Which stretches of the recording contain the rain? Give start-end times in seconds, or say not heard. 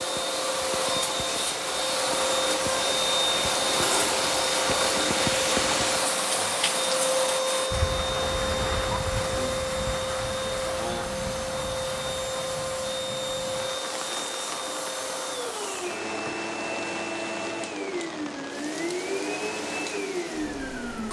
0.0-21.0.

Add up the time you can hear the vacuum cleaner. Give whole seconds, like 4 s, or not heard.
21 s.